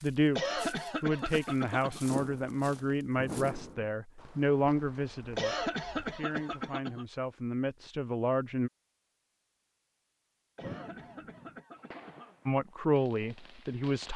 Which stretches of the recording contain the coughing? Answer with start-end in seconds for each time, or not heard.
0.3-2.0, 5.3-7.0, 10.6-12.3.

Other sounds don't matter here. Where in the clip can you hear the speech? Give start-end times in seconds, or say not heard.
0.0-8.7, 12.4-14.1.